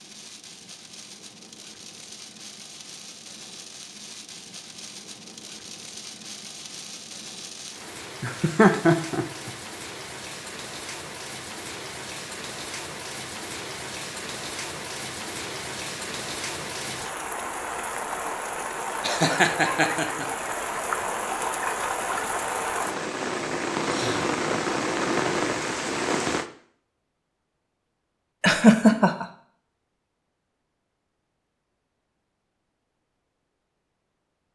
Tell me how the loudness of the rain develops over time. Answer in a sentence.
The loudness of the rain goes up.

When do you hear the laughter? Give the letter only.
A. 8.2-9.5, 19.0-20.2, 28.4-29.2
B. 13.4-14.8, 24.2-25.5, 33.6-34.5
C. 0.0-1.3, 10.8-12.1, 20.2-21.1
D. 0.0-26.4
A.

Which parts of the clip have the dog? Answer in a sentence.
You can't hear the dog here.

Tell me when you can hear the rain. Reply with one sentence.
The rain can be heard from 0.0 to 26.4 s.